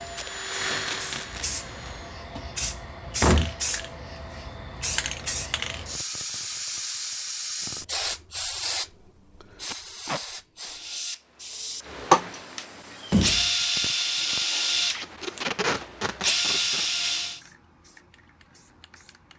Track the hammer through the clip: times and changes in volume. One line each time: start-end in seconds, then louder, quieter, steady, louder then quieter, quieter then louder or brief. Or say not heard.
not heard.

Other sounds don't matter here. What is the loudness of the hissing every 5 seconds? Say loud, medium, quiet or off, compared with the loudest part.
loud, loud, medium, quiet.